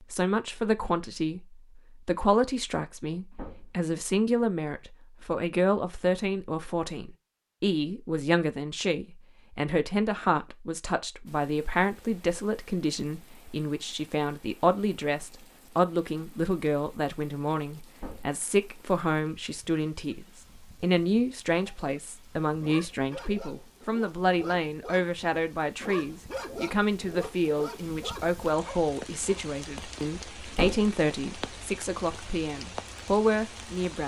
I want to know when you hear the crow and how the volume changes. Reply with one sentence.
You can't hear the crow here.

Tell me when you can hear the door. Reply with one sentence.
The door can be heard from 3.3 to 3.8 s, from 17.9 to 18.4 s and from 30.5 to 30.9 s.